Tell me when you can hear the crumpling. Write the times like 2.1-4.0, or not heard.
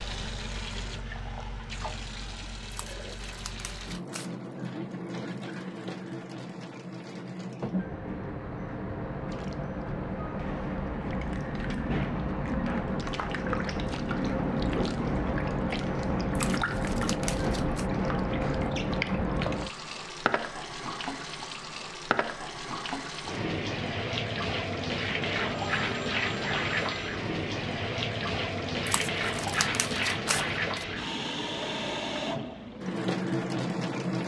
2.7-4.3, 16.4-17.9, 28.9-30.9.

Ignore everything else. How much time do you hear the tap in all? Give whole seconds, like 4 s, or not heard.
34 s.